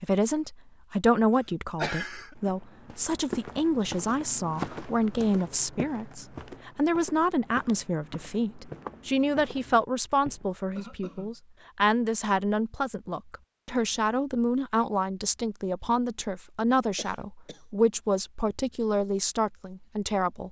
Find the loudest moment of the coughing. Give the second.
2 s.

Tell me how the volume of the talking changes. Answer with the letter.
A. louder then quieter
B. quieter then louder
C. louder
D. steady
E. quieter
D.